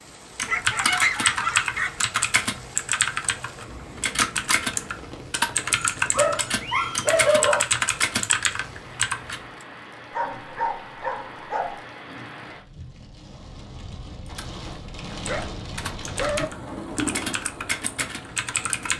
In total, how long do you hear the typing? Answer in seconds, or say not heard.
14 s.